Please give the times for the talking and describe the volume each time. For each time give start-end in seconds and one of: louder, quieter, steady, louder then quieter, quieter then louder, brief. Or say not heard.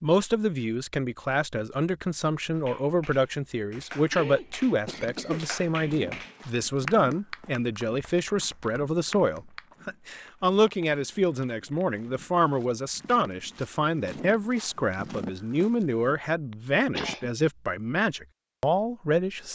0.0-19.5 steady.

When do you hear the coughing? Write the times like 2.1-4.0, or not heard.
4.1-5.5, 16.5-17.3.